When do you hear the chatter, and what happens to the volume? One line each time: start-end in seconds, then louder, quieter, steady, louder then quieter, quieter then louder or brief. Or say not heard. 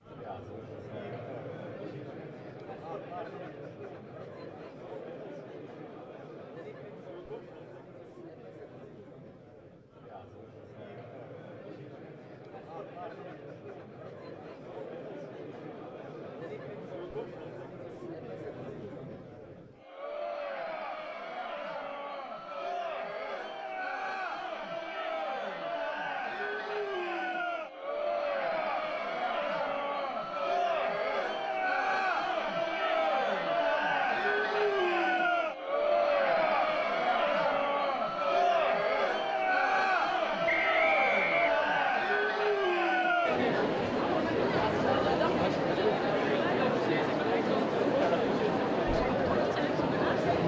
0.0-50.4 louder.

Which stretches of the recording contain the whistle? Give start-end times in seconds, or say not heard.
40.5-42.0.